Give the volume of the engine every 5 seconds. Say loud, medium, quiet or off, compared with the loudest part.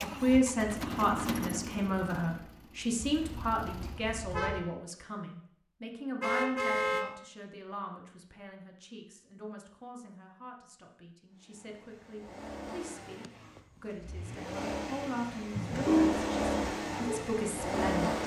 medium, off, medium, loud.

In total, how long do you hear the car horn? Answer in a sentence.
You can hear the car horn for 3 seconds altogether.